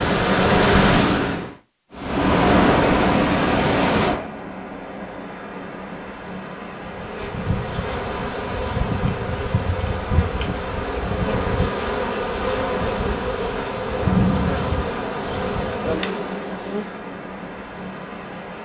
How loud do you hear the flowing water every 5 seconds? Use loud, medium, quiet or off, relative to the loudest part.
loud, quiet, quiet, quiet.